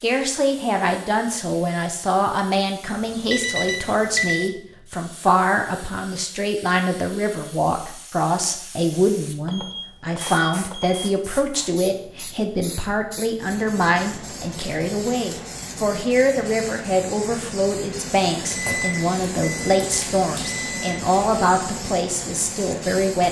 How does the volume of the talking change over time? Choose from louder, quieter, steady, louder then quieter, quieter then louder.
steady.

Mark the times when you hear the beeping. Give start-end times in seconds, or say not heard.
2.9-4.5, 9.4-11.0, 18.5-21.0.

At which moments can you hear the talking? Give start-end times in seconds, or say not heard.
0.0-23.2.